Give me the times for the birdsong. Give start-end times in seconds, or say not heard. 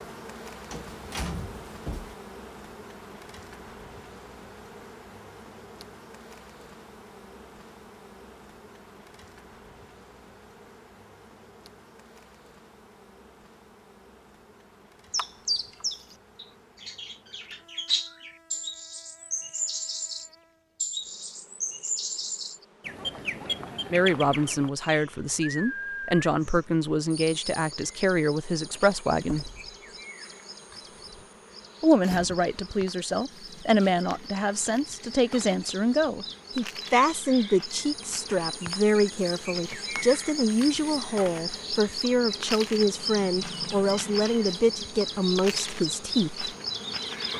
15.1-47.3.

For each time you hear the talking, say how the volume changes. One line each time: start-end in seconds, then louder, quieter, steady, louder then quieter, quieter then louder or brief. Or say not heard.
23.9-29.5 steady
31.8-46.5 steady.